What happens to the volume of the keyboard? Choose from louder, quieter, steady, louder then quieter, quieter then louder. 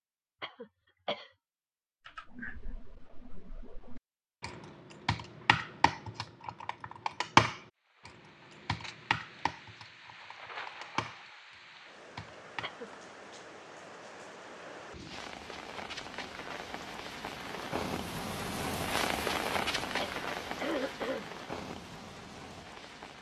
louder then quieter.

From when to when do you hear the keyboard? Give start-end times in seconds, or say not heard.
2.0-12.9.